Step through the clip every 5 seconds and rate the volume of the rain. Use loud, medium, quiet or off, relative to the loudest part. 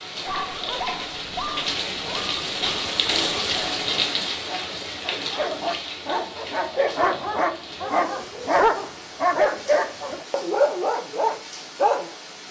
loud, medium, quiet.